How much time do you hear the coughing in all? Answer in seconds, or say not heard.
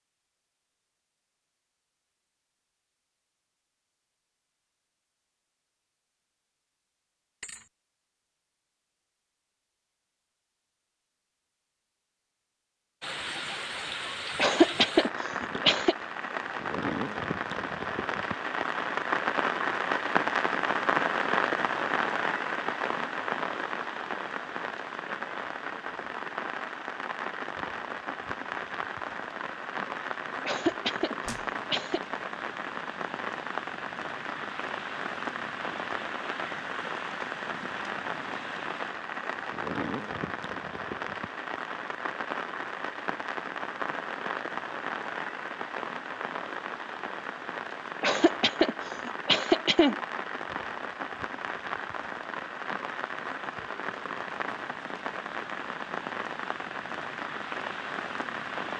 5 s.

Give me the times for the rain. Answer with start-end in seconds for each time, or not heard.
13.0-58.7.